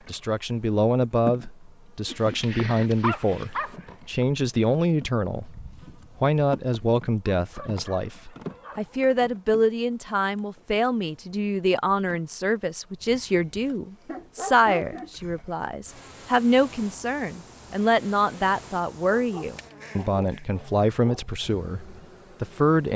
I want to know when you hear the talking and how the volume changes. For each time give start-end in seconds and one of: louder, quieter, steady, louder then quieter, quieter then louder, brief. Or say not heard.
0.1-22.9 steady.